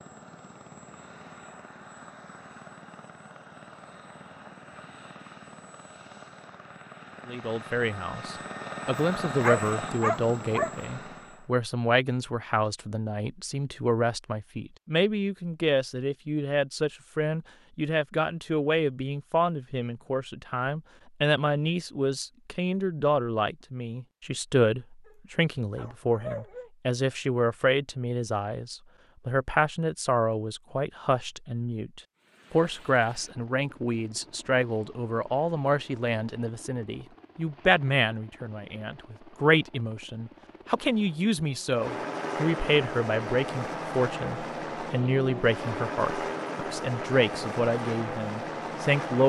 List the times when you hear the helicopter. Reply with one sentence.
You can hear the helicopter from 0.0 to 11.6 s and from 32.1 to 49.2 s.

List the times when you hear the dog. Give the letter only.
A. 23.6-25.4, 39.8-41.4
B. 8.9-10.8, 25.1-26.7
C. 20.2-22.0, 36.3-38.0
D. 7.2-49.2
B.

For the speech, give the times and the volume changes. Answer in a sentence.
You can hear the speech from 7.2 to 49.2 s, at a steady volume.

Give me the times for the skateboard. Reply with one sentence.
The skateboard can't be heard in this clip.